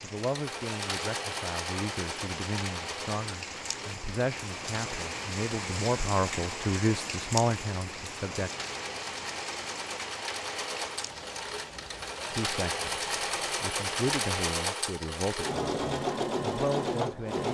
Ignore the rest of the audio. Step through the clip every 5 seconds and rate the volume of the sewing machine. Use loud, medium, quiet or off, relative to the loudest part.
medium, medium, loud, loud.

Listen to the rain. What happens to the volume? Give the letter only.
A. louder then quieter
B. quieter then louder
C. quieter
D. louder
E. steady
A.